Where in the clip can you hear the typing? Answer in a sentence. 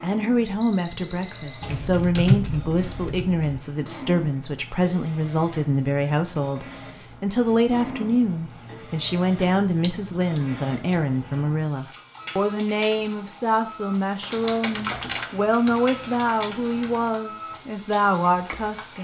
You can hear the typing from 1.6 to 3.6 s, from 9.4 to 11.0 s and from 14.2 to 17.1 s.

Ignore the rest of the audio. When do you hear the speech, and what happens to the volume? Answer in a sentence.
The speech can be heard from 0.0 to 18.9 s, at a steady volume.